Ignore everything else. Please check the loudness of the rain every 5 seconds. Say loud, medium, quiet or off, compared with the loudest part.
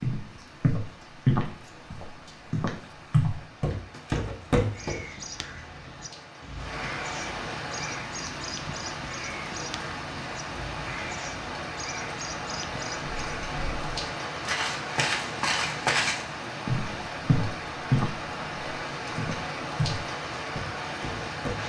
quiet, loud, loud, loud, loud.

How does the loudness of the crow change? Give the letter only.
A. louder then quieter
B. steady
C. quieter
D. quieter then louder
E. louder
B.